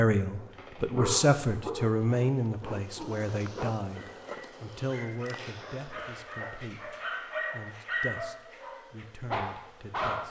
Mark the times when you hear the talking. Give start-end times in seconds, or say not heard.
0.0-10.2.